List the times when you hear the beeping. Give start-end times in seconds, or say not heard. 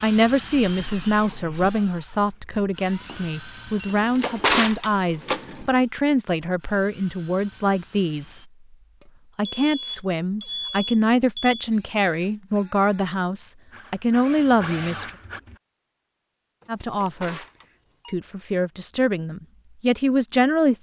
2.9-4.0, 9.0-11.7, 16.6-18.1.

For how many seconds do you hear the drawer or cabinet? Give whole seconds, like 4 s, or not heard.
3 s.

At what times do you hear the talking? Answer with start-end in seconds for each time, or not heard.
0.0-8.4, 9.3-15.1, 16.6-17.4, 18.1-20.7.